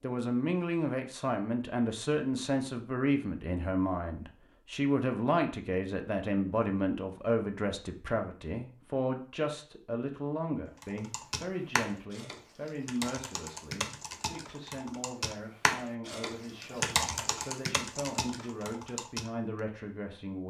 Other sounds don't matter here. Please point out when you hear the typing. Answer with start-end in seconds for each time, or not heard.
10.8-19.6.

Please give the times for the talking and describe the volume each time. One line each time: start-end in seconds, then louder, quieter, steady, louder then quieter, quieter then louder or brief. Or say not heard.
0.0-20.4 quieter.